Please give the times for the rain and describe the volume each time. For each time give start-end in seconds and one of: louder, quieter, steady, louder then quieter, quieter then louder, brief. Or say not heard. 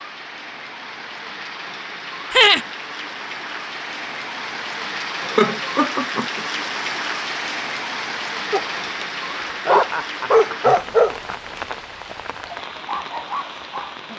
0.0-14.1 louder then quieter.